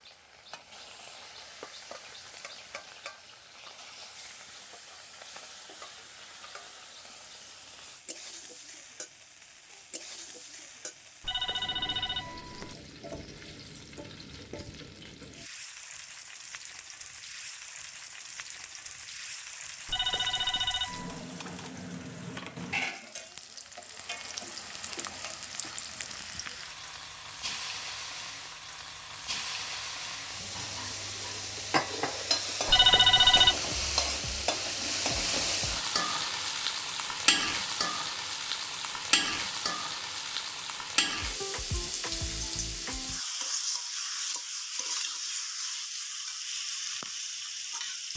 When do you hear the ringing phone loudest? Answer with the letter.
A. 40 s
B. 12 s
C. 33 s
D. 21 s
C.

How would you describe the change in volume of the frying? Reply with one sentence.
The loudness of the frying goes up.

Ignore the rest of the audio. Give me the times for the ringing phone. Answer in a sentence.
The ringing phone can be heard from 11.2 to 12.8 s, from 19.9 to 21.2 s and from 32.6 to 33.5 s.